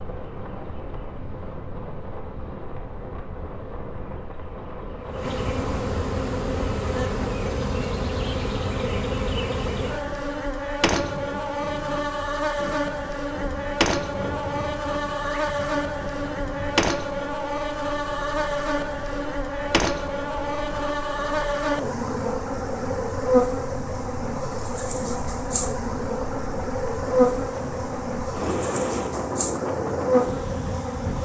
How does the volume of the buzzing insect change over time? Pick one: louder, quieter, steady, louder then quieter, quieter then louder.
louder.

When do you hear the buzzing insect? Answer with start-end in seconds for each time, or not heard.
0.0-31.2.